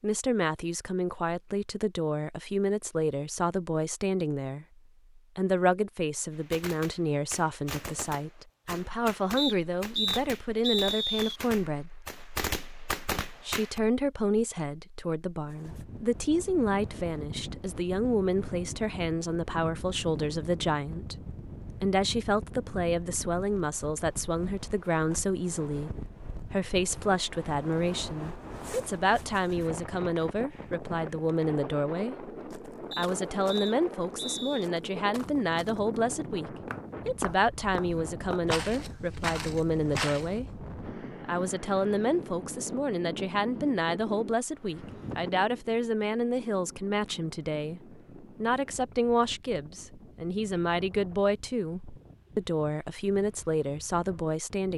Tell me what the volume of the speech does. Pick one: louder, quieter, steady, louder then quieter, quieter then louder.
steady.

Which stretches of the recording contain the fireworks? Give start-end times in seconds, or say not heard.
6.3-13.8.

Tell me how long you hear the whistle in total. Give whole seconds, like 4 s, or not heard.
4 s.